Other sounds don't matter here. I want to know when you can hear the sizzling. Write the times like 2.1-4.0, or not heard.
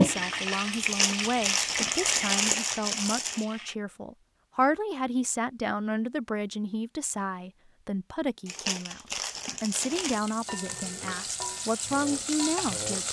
0.0-3.8, 9.9-13.0.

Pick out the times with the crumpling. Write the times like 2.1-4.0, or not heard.
0.8-3.5, 8.4-10.2.